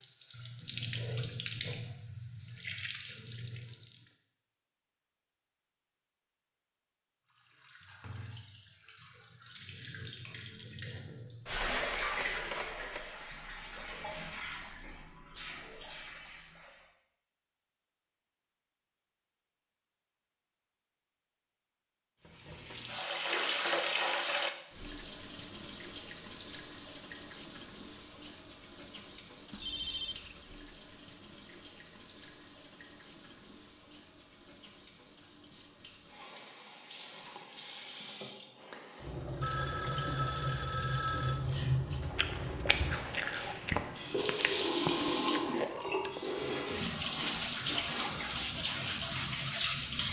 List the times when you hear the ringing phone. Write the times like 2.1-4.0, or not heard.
11.5-13.0, 29.5-30.4, 39.4-41.5.